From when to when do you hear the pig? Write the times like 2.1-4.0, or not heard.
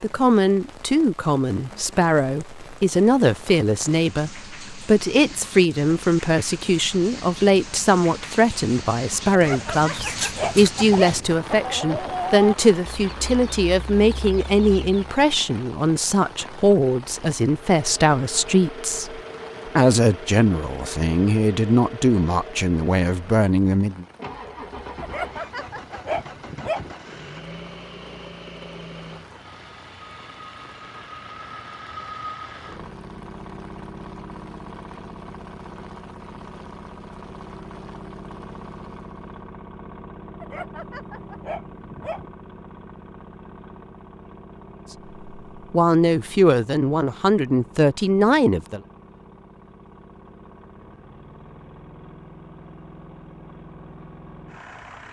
not heard.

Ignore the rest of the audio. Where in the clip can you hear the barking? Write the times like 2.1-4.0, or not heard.
9.3-11.2, 25.0-26.9, 40.4-42.3.